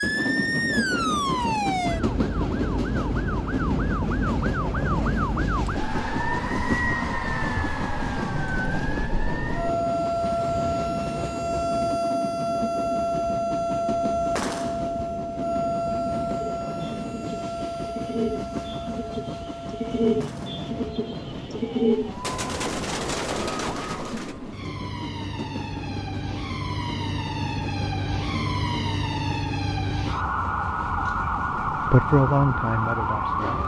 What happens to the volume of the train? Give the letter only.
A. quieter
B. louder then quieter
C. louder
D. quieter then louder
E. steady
A.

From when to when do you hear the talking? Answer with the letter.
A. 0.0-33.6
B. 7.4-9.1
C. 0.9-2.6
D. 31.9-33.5
D.